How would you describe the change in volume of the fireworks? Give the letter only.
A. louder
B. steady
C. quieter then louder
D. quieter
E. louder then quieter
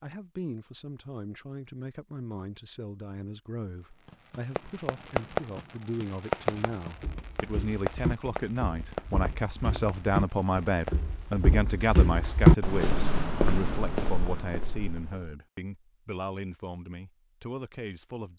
D.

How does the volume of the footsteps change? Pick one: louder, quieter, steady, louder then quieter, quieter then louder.
louder then quieter.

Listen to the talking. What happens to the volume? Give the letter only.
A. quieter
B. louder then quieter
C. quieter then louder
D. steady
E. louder
B.